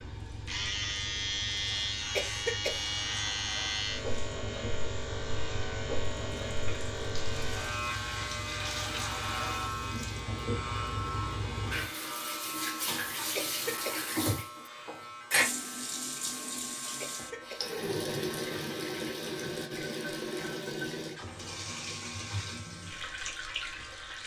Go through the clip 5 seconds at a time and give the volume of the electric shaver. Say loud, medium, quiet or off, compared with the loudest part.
loud, loud, medium, quiet, quiet.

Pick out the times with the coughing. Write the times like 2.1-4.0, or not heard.
2.1-2.9, 13.3-14.1, 17.0-17.8.